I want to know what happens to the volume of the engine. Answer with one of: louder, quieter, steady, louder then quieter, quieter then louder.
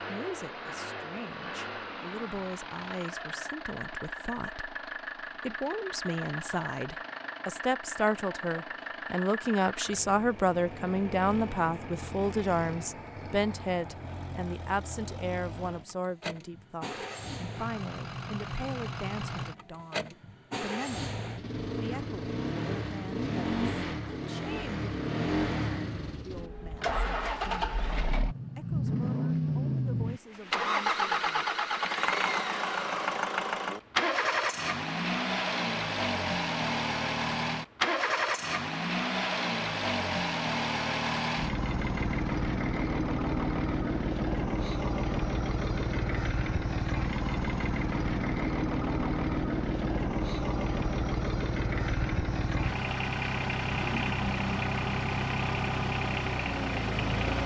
louder.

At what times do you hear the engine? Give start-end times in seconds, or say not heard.
0.0-57.4.